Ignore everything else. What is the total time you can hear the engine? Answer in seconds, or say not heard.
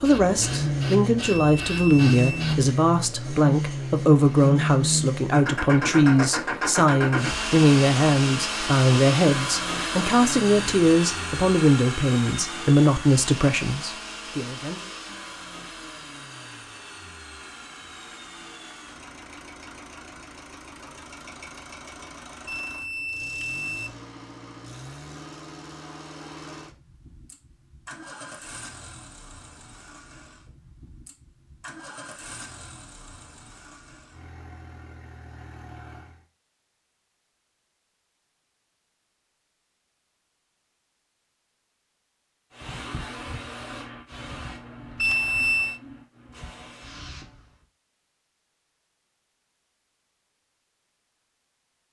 36 s.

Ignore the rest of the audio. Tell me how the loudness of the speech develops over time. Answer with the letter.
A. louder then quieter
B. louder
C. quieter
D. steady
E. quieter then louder
D.